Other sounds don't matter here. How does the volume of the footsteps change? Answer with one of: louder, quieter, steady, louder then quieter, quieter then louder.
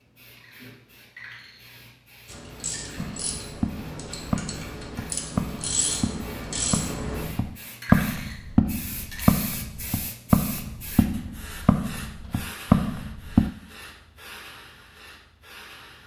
louder.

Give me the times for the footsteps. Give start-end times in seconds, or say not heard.
3.0-13.5.